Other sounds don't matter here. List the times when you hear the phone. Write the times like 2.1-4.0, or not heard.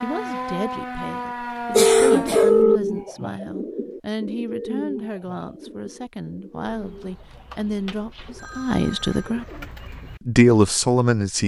1.8-2.8, 6.7-9.3.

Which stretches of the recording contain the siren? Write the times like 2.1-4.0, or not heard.
0.0-2.5.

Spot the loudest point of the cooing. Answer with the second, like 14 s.
3 s.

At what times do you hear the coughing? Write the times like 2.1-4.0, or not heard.
1.7-2.6.